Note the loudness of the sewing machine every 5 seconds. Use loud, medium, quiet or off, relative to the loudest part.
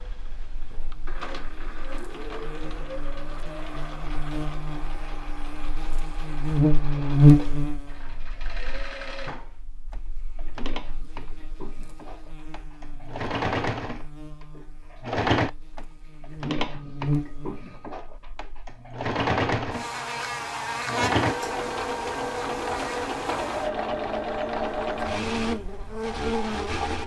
quiet, quiet, medium, loud, loud, loud.